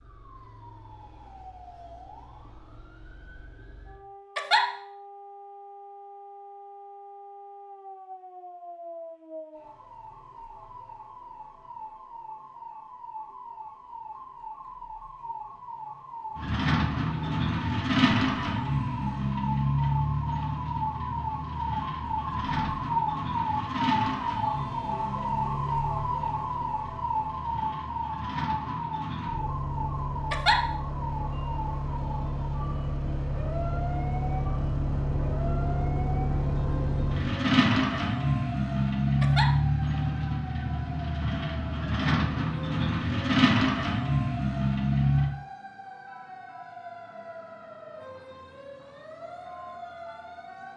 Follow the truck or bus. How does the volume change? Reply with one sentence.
The loudness of the truck or bus goes down, then up.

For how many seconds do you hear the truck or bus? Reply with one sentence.
The truck or bus can be heard for 29 seconds in total.